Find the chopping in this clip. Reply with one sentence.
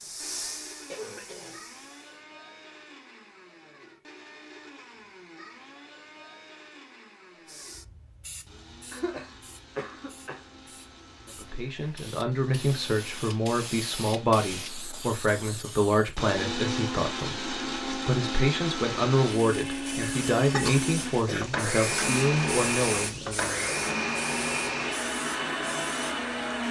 The chopping can't be heard in this clip.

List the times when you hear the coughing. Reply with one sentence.
The coughing can be heard from 0.9 to 1.6 s, from 8.9 to 10.4 s and from 20.0 to 21.4 s.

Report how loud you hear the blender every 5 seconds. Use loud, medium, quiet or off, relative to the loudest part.
quiet, quiet, quiet, loud, loud, loud.